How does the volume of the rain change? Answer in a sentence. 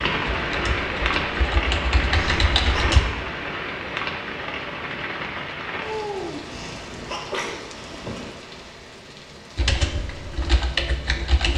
The volume of the rain goes down.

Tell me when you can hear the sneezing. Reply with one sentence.
You can hear the sneezing from 2.1 to 2.9 s and from 6.5 to 8.3 s.